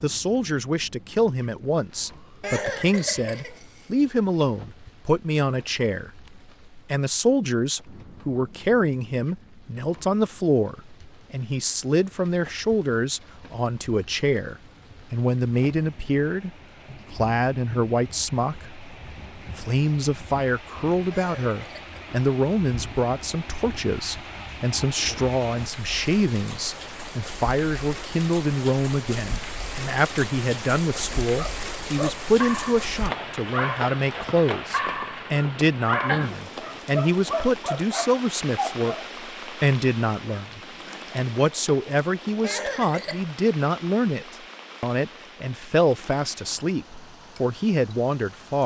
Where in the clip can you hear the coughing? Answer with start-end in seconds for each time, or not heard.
2.4-3.9, 21.1-22.0, 42.4-43.3.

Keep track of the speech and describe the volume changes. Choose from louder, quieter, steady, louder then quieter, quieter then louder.
steady.